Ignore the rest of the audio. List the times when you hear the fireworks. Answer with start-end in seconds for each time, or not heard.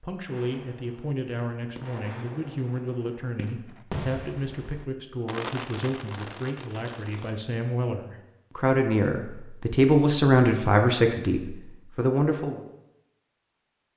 0.2-7.3.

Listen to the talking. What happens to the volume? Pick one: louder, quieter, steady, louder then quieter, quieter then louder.
louder.